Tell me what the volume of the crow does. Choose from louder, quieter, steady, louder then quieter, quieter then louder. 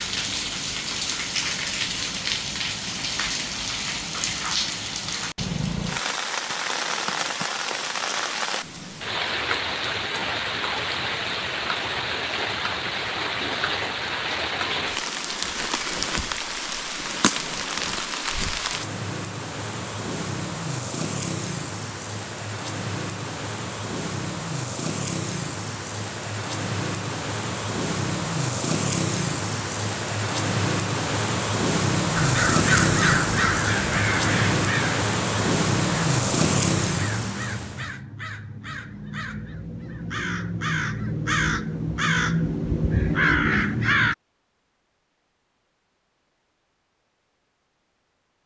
quieter then louder.